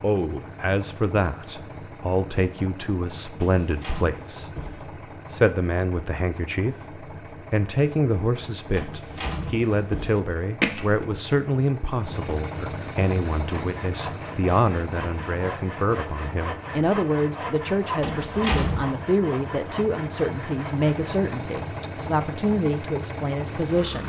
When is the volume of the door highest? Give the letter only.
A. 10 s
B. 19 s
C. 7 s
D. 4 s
B.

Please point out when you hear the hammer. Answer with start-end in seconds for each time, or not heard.
10.6-11.1.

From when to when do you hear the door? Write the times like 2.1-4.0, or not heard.
3.4-4.8, 8.8-10.2, 18.0-19.0.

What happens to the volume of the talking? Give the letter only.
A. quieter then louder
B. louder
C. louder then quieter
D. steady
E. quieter
D.